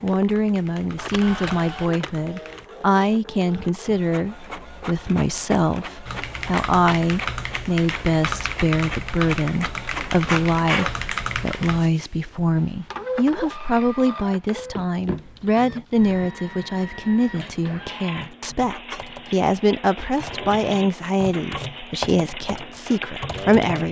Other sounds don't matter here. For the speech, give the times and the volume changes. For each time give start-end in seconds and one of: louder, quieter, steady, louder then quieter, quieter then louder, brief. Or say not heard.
0.0-23.8 steady.